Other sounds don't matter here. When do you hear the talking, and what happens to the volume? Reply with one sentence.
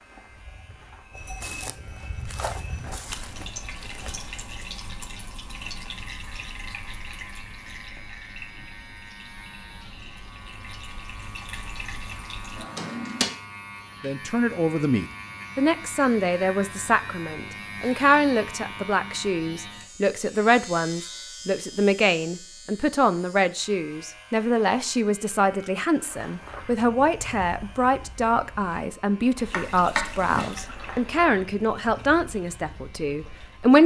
The talking can be heard from 14.0 to 33.8 s, at a steady volume.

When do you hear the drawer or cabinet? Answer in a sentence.
You can hear the drawer or cabinet from 12.5 to 13.2 s and from 29.5 to 30.6 s.